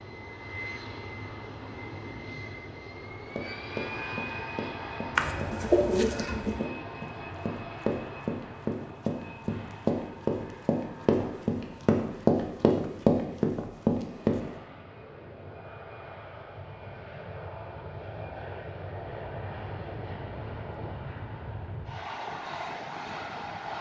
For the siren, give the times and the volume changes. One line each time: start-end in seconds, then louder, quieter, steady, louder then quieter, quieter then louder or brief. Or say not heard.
not heard.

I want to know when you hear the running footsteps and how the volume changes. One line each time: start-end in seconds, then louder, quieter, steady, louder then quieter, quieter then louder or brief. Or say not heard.
3.0-14.4 louder.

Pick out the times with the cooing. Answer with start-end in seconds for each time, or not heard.
5.2-6.7.